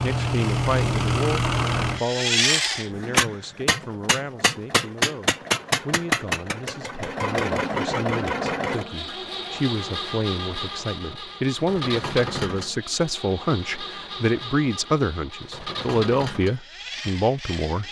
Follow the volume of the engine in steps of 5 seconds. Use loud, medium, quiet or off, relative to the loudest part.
loud, loud, medium, medium.